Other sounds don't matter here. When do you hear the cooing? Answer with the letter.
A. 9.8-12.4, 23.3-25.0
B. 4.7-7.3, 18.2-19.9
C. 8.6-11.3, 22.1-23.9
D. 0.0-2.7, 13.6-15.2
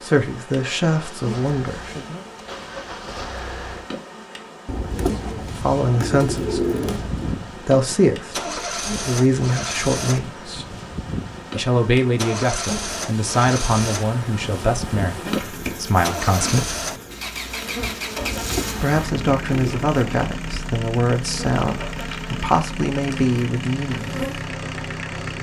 B.